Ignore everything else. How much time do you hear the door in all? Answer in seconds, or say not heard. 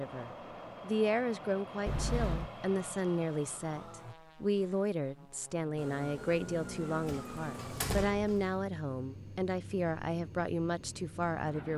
2 s.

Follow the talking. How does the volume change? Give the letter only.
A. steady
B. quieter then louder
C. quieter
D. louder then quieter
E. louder
A.